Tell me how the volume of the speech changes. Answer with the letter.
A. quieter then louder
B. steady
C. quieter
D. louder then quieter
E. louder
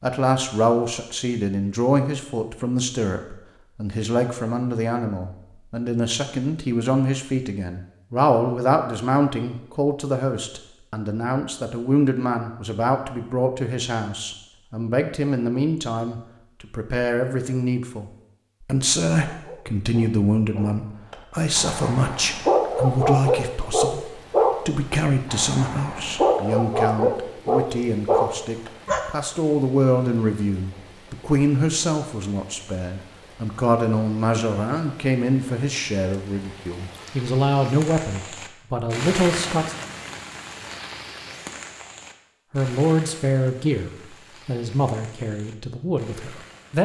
B.